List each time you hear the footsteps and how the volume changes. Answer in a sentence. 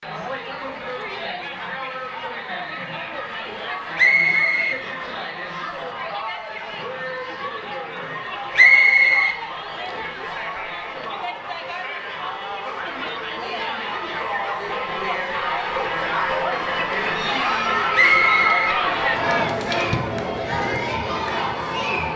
You can't hear the footsteps here.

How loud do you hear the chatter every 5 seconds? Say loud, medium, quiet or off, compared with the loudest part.
medium, medium, medium, loud, loud.